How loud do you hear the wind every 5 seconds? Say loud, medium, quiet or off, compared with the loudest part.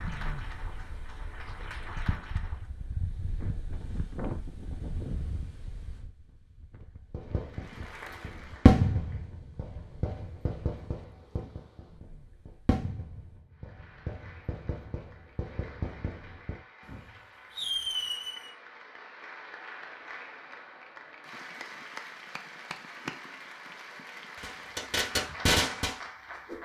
loud, medium, quiet, off, off, off.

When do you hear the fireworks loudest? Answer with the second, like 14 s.
9 s.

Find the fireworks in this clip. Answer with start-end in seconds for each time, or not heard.
7.1-18.5, 24.4-26.6.